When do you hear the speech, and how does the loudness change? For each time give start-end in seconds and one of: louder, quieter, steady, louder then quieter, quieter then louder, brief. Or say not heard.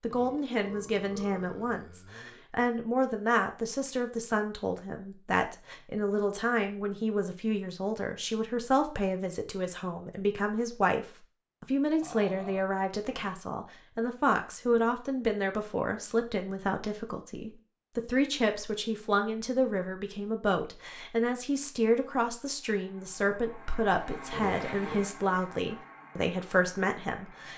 0.0-27.5 steady.